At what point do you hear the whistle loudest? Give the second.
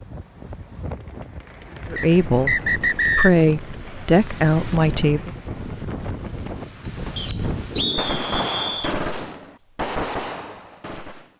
3 s.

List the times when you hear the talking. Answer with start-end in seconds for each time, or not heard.
1.9-5.3.